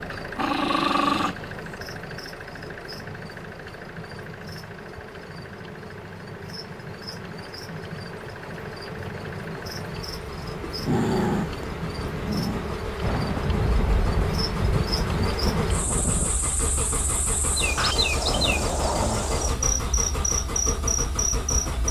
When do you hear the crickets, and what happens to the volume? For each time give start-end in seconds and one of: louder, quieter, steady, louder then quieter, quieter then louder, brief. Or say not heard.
0.0-21.8 louder.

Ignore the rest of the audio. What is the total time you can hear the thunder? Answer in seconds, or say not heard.
3 s.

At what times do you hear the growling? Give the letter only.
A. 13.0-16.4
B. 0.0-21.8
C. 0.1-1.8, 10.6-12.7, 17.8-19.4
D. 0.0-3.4
C.